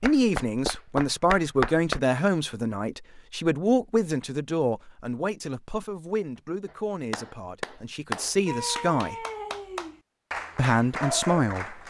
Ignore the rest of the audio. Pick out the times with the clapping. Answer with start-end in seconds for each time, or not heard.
0.0-2.0, 6.7-11.8.